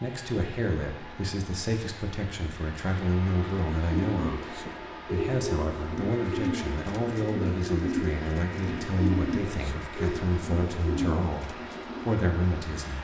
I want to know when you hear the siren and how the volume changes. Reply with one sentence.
The siren can't be heard in this clip.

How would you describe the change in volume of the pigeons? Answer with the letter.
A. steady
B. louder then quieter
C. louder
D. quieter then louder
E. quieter
A.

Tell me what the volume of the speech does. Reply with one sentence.
The loudness of the speech stays about the same.